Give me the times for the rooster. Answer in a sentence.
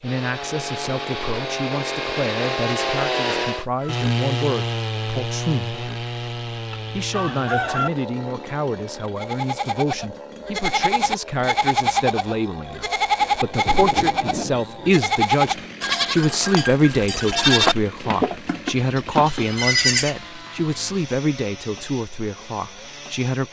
You can hear the rooster from 6.7 to 7.9 s.